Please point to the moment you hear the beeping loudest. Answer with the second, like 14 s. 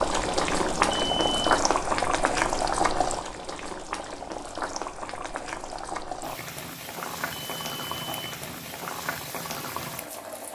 1 s.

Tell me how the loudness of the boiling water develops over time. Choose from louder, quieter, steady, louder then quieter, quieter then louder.
quieter.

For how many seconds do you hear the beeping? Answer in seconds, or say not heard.
3 s.